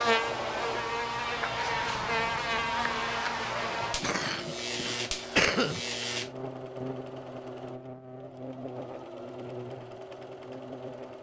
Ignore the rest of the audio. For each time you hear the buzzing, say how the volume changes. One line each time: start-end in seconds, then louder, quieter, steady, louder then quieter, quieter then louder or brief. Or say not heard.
0.0-11.1 quieter.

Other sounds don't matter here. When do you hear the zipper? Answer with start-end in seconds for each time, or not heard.
not heard.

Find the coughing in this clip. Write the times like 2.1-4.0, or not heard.
3.8-5.8.